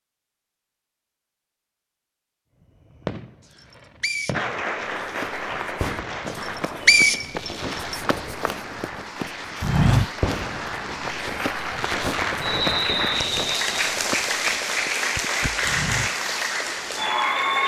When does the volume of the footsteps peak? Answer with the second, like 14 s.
10 s.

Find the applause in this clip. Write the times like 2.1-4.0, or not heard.
4.3-17.6.